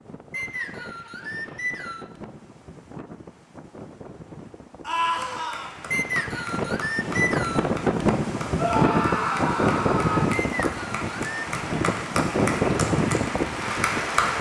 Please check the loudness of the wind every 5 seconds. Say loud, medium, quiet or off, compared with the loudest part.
quiet, loud, loud.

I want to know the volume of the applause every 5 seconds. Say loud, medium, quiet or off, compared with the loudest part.
off, medium, loud.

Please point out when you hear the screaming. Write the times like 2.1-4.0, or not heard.
4.8-5.7, 8.6-10.2.